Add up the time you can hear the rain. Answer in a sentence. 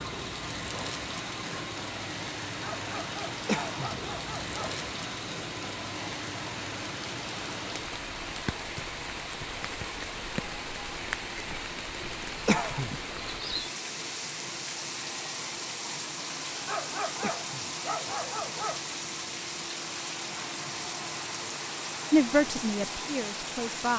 You can hear the rain for 24 seconds altogether.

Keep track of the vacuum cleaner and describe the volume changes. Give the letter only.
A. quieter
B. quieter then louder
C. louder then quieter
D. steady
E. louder
D.